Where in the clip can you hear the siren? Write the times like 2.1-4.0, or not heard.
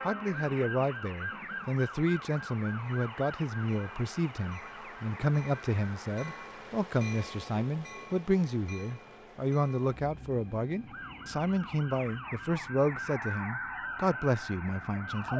0.0-6.2, 10.8-15.3.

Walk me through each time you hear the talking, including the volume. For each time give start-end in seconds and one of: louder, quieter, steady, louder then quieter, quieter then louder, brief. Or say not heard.
0.0-15.3 steady.